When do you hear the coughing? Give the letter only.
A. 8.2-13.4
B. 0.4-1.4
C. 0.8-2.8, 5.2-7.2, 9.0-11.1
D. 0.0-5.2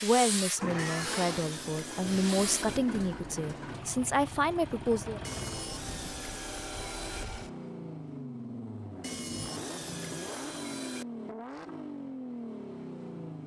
B.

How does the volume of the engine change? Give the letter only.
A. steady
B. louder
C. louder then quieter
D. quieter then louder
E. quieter
A.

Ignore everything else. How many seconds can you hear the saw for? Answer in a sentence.
The saw can be heard for 6 seconds in total.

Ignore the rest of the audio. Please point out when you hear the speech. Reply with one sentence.
The speech can be heard from 0.0 to 5.2 s.